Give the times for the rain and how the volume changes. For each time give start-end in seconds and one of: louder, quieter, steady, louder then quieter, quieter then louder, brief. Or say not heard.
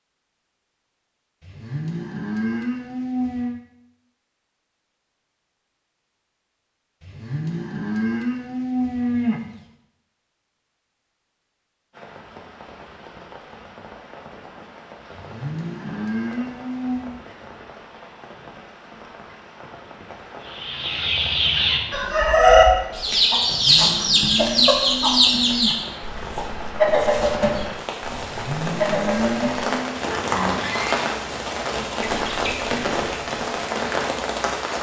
11.9-34.7 louder.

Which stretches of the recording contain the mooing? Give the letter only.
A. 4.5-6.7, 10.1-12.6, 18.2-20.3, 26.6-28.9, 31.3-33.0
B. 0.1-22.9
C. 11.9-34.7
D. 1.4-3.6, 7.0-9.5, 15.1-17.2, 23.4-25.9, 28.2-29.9
D.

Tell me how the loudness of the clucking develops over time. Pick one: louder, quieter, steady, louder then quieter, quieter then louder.
quieter.